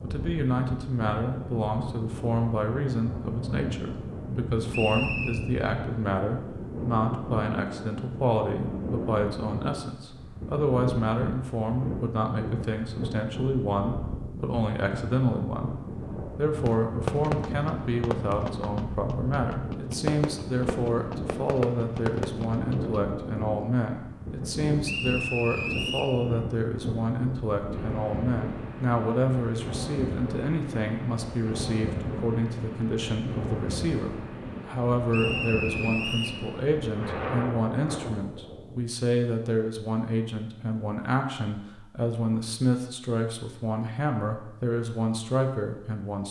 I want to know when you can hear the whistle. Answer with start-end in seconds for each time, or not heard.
4.7-5.4, 24.9-26.1, 35.1-36.4.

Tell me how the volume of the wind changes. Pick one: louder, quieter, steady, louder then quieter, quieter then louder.
steady.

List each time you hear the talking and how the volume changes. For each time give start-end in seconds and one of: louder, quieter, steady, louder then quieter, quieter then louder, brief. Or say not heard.
0.0-46.2 steady.